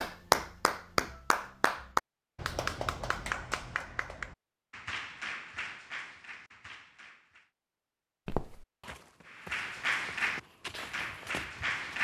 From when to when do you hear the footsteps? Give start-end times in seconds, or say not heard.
8.2-11.9.